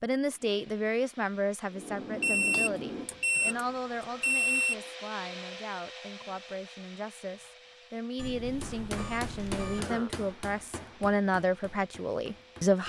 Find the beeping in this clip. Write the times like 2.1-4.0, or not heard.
2.2-4.8, 8.2-9.8.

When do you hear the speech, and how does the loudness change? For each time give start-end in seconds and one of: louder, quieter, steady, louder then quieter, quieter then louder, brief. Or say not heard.
0.0-12.8 quieter then louder.